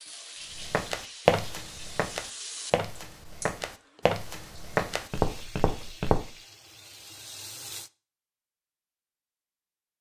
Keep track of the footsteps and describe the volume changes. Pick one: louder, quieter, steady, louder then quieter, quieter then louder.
quieter then louder.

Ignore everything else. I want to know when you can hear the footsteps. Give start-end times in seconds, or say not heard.
0.6-6.3.